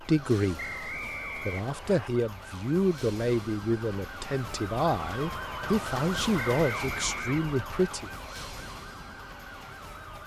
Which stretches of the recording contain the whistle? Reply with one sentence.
The whistle can be heard from 0.6 to 2.1 s and from 6.3 to 7.5 s.